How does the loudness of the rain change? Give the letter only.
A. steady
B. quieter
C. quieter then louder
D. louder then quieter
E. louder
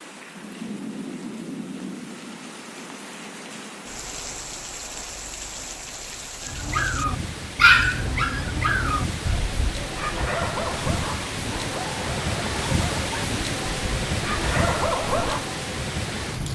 E.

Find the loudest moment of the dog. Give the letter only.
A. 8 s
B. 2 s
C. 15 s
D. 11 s
A.